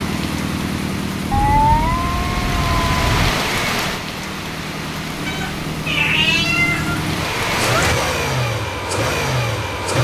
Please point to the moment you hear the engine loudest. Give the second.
8 s.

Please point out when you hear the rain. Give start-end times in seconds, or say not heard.
0.0-8.0.